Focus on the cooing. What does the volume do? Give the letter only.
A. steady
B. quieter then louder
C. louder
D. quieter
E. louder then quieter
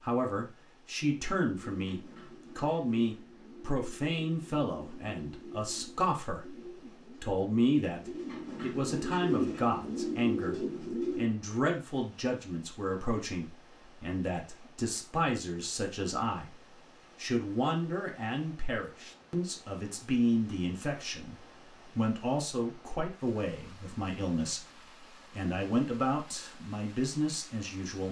C.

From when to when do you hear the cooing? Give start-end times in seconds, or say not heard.
1.1-11.2.